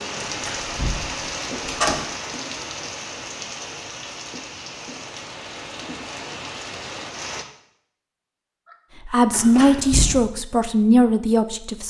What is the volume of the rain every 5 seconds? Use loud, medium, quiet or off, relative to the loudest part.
loud, loud, off.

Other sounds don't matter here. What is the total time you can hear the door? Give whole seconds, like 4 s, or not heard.
3 s.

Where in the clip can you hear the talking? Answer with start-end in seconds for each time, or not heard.
9.1-11.8.